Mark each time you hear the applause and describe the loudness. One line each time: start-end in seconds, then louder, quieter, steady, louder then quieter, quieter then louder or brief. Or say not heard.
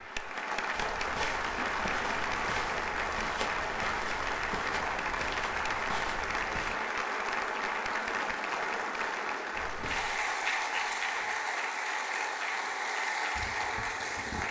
0.0-14.4 steady.